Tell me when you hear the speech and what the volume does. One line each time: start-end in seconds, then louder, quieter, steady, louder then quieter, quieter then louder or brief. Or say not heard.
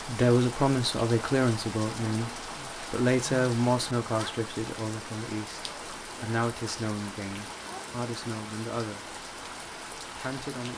0.1-9.2 quieter
10.2-10.7 brief.